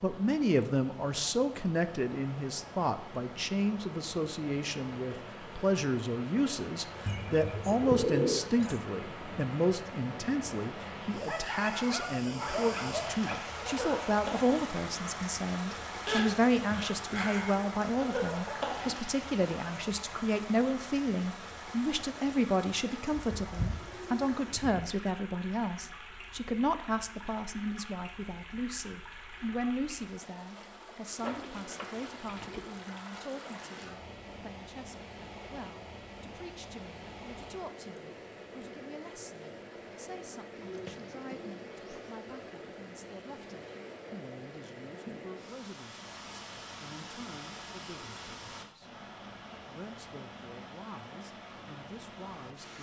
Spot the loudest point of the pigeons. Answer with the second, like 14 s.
8 s.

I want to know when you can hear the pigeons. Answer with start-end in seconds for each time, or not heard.
7.0-8.8, 23.1-24.9, 31.1-32.8, 40.5-42.1.